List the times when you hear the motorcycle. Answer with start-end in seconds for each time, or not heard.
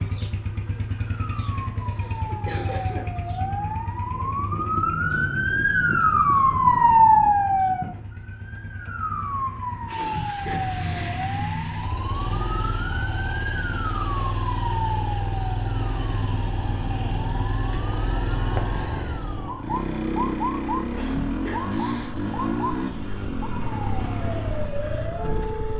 0.0-25.7.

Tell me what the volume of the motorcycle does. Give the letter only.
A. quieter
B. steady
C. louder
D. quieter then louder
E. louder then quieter
D.